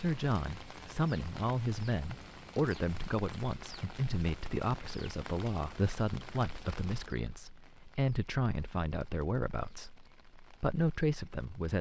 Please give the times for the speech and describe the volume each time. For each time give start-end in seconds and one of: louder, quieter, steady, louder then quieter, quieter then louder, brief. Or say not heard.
0.0-11.7 steady.